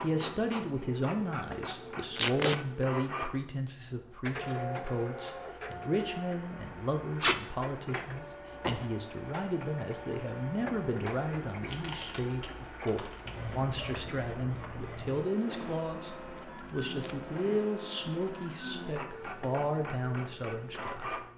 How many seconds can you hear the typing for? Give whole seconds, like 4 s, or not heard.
2 s.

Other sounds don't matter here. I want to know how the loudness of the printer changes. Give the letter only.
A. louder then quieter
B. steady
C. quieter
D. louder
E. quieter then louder
B.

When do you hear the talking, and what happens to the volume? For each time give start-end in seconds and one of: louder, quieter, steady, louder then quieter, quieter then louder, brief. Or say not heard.
0.0-21.2 steady.